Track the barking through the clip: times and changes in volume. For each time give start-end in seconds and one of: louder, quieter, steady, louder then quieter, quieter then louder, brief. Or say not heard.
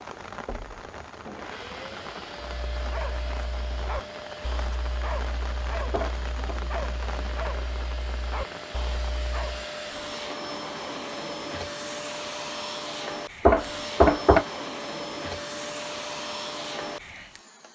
2.5-9.7 steady.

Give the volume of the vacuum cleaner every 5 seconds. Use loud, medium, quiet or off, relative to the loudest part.
medium, medium, loud, loud.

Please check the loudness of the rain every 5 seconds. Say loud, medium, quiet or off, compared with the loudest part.
loud, loud, off, off.